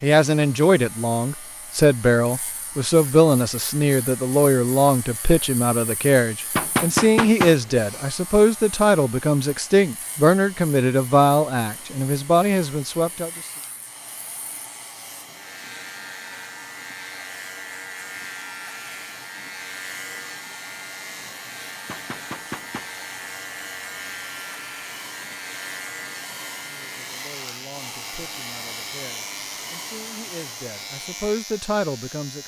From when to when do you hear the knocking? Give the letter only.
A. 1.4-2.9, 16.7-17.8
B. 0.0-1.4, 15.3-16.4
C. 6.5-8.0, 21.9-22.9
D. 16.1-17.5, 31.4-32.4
C.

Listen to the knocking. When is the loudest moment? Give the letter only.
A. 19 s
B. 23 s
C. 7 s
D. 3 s
C.